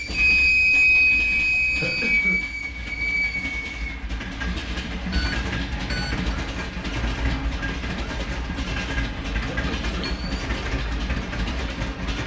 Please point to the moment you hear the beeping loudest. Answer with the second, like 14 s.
1 s.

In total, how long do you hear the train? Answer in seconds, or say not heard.
12 s.